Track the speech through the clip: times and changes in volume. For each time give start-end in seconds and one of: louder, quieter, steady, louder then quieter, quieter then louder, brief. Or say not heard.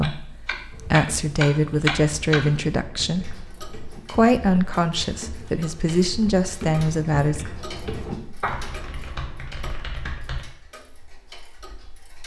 0.0-7.5 steady.